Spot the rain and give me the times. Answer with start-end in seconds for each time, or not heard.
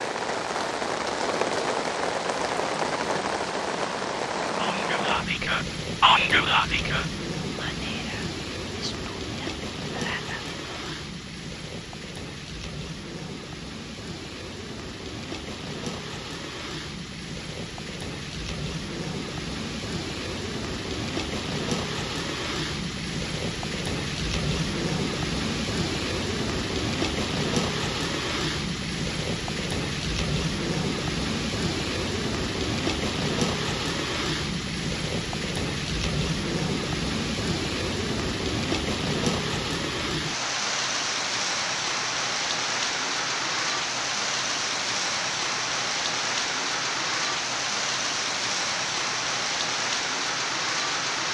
0.0-51.2.